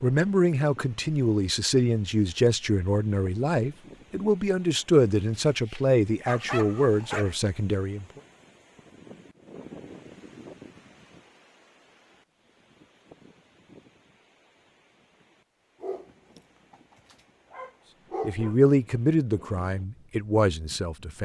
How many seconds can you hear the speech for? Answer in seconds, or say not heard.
11 s.